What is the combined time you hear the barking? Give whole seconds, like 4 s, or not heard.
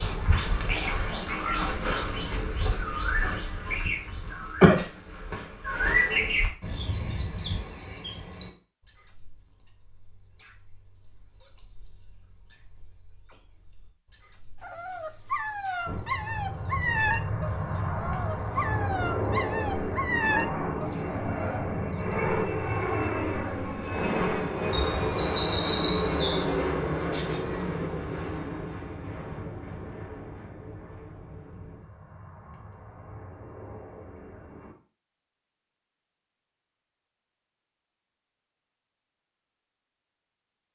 7 s.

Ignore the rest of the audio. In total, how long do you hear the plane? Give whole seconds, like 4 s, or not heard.
19 s.